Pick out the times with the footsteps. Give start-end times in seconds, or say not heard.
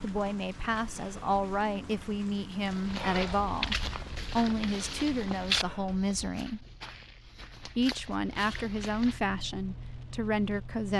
2.6-9.2.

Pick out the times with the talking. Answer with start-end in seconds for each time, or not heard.
0.0-6.7, 7.6-10.9.